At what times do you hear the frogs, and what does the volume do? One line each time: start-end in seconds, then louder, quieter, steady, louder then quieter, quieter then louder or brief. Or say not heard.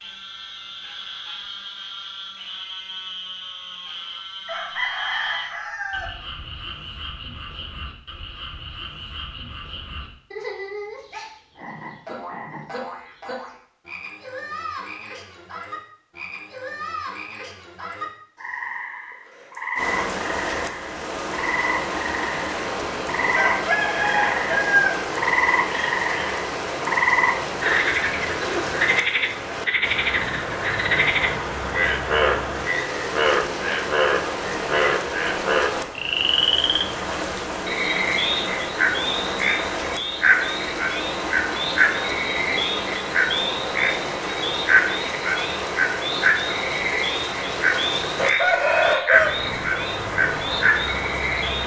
0.0-51.6 louder.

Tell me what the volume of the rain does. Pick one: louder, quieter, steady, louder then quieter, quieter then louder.
steady.